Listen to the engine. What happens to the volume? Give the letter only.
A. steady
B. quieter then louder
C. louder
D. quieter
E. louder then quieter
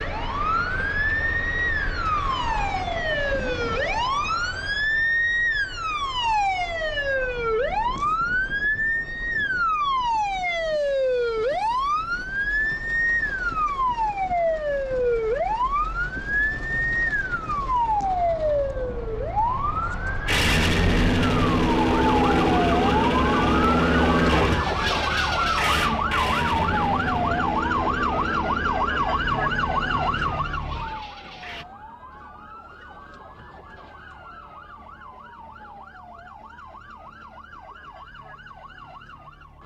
D.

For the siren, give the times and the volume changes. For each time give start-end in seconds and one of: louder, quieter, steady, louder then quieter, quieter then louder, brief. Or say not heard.
0.0-39.6 quieter.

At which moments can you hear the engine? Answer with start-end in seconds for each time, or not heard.
20.2-31.6.